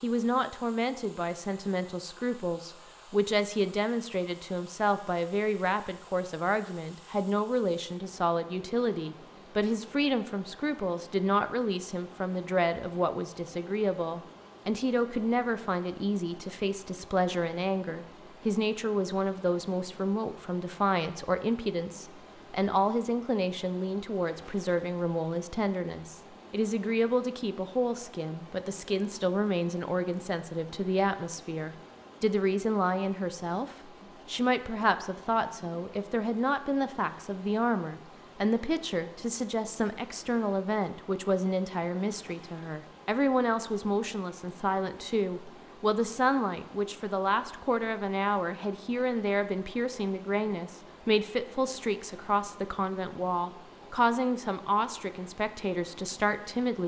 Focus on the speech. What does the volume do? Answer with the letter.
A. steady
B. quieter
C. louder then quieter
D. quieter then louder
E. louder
A.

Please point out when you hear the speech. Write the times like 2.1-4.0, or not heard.
0.0-56.8.